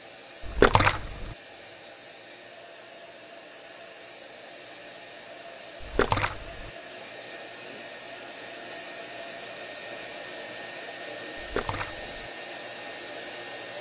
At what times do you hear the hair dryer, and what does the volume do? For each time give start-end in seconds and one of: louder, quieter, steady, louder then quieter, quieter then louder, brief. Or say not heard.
0.0-13.7 louder.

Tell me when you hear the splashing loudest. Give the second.
1 s.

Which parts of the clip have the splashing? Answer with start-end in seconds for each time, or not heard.
0.4-1.4, 5.8-6.7, 11.3-12.2.